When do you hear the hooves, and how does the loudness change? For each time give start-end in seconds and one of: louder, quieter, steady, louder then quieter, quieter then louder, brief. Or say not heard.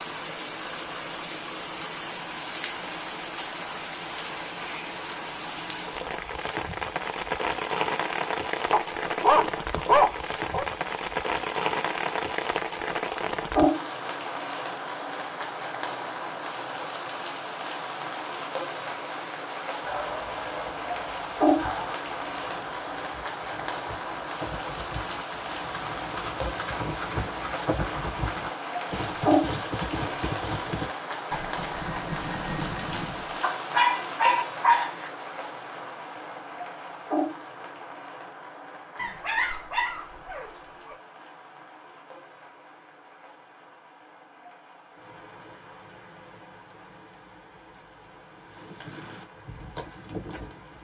21.4-33.5 louder
48.4-50.7 brief.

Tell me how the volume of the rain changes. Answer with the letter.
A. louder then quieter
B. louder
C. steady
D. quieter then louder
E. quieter
E.